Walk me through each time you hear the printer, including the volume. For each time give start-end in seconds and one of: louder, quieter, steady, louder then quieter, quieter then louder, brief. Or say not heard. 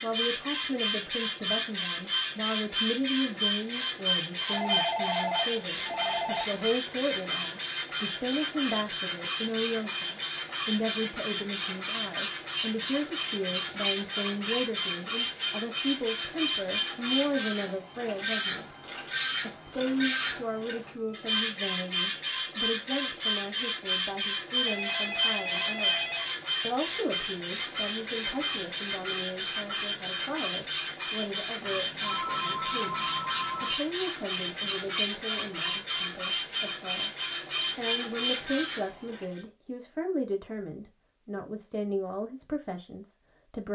0.0-39.5 steady.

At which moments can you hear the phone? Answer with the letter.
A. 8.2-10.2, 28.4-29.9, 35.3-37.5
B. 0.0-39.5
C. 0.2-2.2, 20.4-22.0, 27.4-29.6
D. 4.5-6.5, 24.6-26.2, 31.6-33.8
D.